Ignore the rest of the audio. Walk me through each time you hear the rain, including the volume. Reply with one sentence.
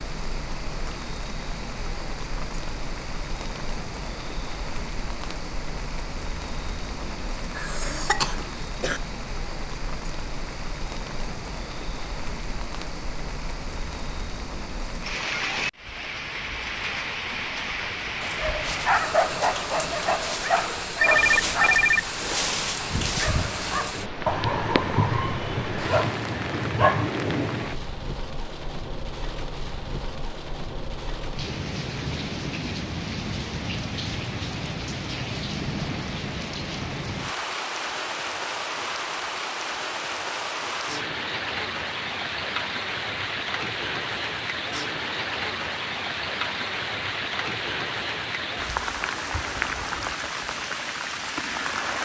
The rain can be heard from 0.0 to 51.9 s, getting louder.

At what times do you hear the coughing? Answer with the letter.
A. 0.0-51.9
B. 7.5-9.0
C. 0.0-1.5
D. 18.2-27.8
B.